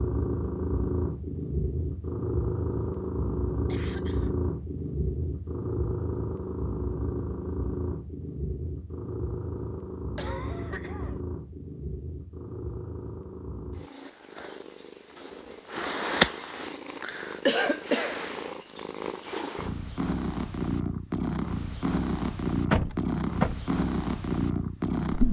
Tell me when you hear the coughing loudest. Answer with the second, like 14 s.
18 s.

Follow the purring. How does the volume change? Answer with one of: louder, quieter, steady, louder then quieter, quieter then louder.
quieter then louder.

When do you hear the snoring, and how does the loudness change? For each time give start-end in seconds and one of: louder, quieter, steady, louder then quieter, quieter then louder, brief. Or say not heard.
not heard.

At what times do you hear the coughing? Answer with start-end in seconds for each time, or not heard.
3.6-4.3, 10.2-11.2, 17.0-18.1.